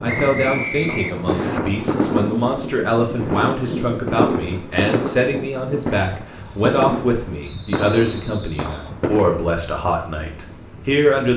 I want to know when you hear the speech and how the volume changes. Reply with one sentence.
The speech can be heard from 0.0 to 11.3 s, at a steady volume.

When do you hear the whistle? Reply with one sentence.
You can hear the whistle from 0.1 to 1.6 s and from 7.4 to 8.9 s.